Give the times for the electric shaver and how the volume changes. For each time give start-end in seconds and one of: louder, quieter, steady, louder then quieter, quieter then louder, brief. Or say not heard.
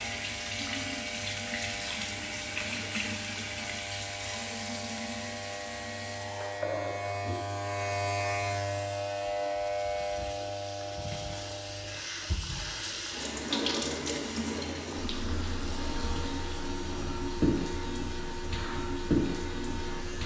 0.0-20.2 louder then quieter.